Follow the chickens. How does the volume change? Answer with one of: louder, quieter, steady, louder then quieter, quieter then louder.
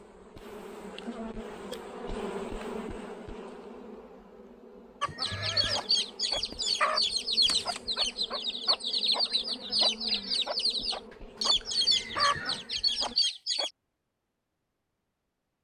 steady.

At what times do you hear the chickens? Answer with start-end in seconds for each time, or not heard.
5.0-13.7.